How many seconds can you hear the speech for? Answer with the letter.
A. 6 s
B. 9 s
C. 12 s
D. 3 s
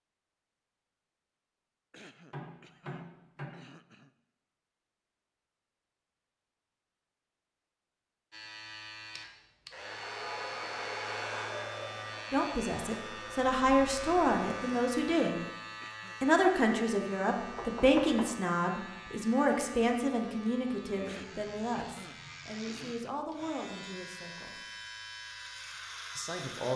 C.